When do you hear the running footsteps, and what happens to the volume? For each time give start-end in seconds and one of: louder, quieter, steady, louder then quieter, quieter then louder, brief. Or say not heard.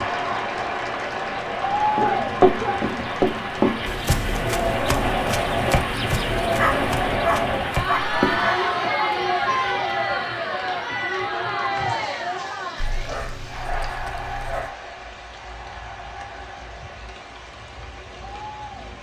1.9-8.5 quieter.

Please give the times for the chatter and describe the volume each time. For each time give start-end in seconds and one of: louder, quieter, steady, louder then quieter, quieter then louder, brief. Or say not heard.
0.0-18.9 quieter.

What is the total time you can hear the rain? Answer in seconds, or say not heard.
19 s.